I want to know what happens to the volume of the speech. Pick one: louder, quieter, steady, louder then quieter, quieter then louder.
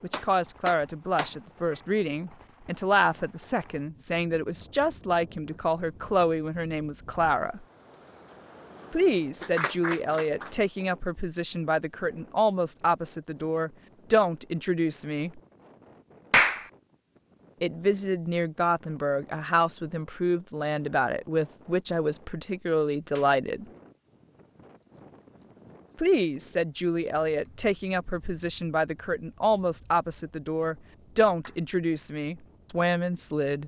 steady.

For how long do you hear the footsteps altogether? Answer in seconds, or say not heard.
not heard.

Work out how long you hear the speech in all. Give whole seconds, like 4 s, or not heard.
28 s.